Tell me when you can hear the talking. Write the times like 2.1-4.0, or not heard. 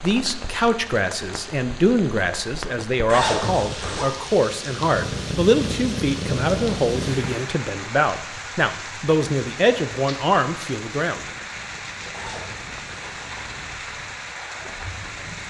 0.0-11.3.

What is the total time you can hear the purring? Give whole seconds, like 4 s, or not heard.
3 s.